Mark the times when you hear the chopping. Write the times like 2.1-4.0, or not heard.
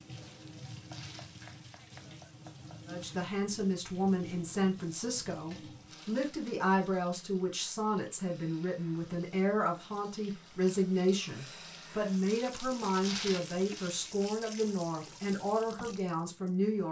0.8-2.9.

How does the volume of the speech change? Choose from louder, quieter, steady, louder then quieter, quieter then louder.
steady.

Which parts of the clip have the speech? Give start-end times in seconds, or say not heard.
2.9-16.8.